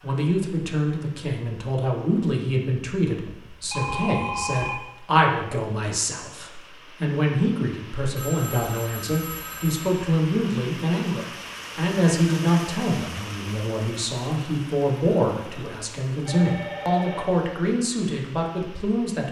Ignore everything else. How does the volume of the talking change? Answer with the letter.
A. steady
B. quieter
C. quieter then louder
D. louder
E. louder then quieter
A.